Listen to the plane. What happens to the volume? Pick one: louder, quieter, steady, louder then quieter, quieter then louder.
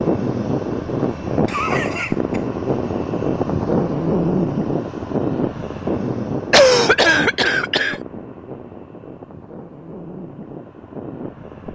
quieter.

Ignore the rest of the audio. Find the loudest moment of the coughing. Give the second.
7 s.